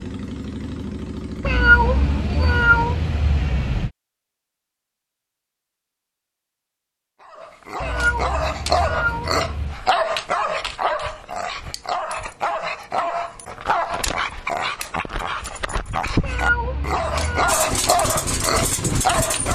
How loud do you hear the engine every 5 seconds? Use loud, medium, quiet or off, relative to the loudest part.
medium, off, off, loud.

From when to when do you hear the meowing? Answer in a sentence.
You can hear the meowing from 1.4 to 3.9 s, from 7.8 to 9.8 s and from 16.2 to 17.6 s.